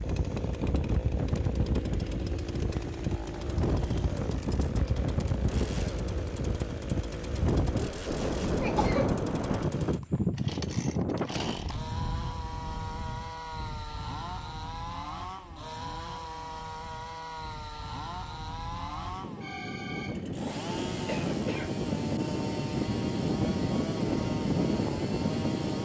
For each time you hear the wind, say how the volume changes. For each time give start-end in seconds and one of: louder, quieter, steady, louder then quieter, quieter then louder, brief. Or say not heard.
0.0-25.8 quieter then louder.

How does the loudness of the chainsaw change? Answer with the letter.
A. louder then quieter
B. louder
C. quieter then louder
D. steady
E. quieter
D.